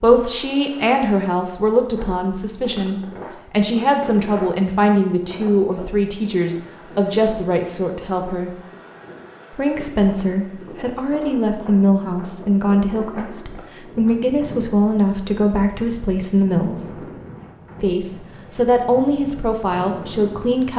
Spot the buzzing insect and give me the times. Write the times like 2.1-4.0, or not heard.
not heard.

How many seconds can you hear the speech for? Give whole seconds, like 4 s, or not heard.
19 s.